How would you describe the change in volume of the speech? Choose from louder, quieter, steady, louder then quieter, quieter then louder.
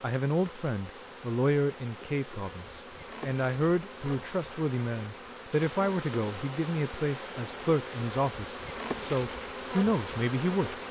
steady.